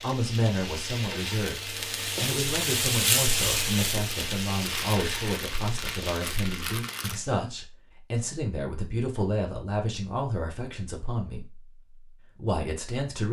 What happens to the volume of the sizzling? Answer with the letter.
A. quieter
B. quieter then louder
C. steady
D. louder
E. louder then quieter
E.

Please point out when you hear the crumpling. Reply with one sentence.
You can hear the crumpling from 4.6 to 7.2 s.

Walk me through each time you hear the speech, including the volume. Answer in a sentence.
The speech can be heard from 0.0 to 11.7 s, at a steady volume; and briefly from 12.3 to 13.2 s.